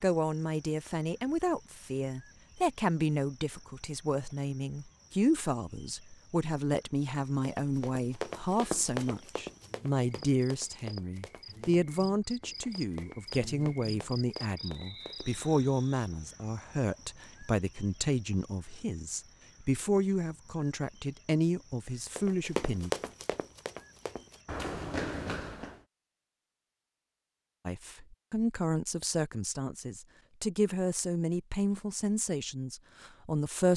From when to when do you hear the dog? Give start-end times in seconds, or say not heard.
not heard.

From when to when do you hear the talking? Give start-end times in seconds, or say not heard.
0.0-22.9, 27.6-33.7.